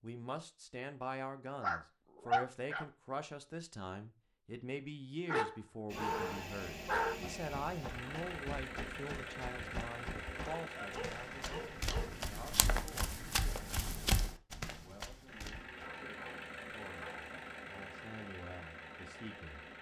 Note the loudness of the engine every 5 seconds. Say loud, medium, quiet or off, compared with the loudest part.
off, loud, loud, loud.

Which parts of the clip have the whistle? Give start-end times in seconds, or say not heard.
not heard.